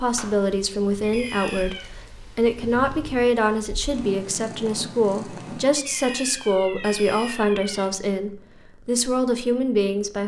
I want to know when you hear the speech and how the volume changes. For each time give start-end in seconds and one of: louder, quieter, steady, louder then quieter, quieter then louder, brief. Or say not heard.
0.0-10.2 steady.